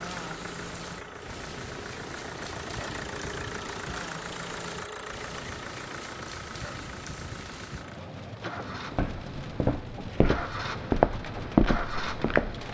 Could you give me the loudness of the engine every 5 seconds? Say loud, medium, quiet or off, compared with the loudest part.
loud, medium, loud.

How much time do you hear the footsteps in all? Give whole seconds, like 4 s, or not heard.
4 s.